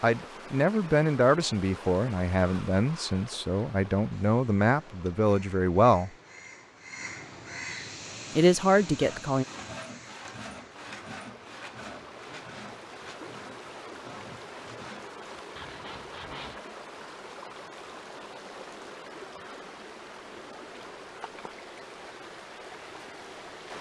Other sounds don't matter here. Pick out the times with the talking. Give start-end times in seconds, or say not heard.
0.0-6.1, 8.3-9.4.